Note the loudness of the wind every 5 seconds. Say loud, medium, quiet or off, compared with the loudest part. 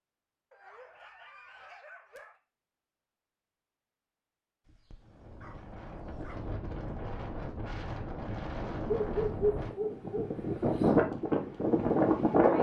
off, quiet, loud.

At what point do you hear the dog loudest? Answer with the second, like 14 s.
10 s.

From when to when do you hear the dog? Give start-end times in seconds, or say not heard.
0.5-2.4, 4.7-6.5, 8.8-10.9.